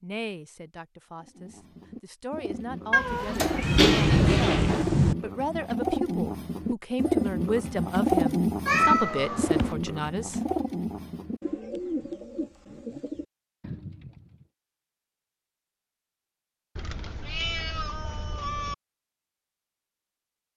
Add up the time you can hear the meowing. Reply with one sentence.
You can hear the meowing for 5 seconds altogether.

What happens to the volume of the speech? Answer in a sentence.
The volume of the speech goes up.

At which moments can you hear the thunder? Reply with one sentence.
You can hear the thunder from 3.6 to 5.2 s.